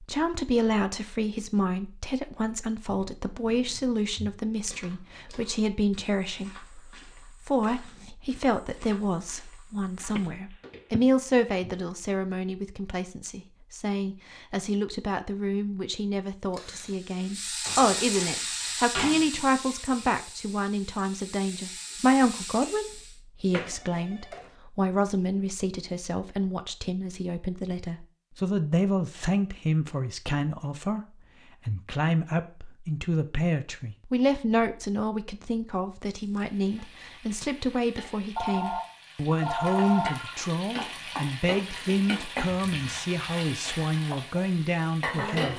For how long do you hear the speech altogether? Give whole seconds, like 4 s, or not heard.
45 s.